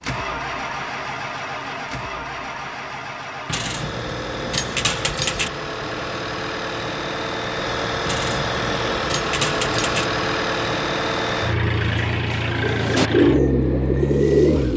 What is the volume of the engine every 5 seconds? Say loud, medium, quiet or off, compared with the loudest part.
medium, loud, loud.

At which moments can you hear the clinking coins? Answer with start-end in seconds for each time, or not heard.
3.5-5.5, 8.1-10.1.